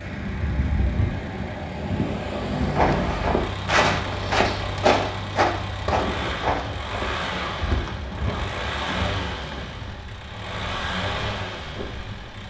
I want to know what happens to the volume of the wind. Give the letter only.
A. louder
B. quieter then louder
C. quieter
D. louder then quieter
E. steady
C.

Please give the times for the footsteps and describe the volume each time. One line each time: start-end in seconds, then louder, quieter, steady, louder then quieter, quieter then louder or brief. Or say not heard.
2.7-9.3 quieter.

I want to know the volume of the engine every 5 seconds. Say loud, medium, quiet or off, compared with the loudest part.
medium, loud, loud.